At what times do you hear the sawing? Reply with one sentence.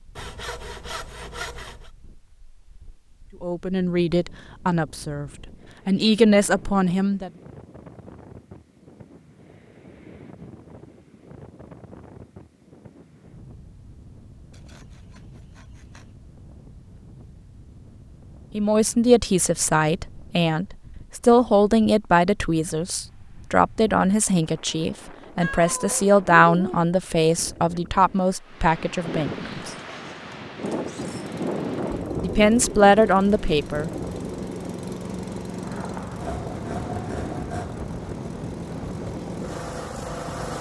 The sawing can be heard from 0.1 to 1.9 s, from 14.5 to 16.1 s and from 36.2 to 37.8 s.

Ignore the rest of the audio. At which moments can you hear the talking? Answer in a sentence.
You can hear the talking from 3.4 to 7.3 s, from 18.6 to 29.7 s and from 32.2 to 33.9 s.